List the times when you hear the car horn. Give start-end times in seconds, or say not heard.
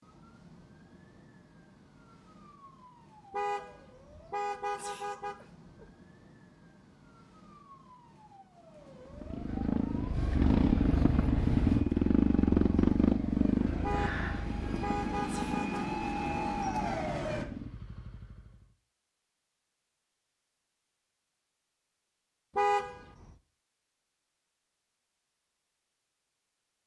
3.3-5.8, 13.8-15.9, 22.6-23.3.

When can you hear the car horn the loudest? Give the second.
23 s.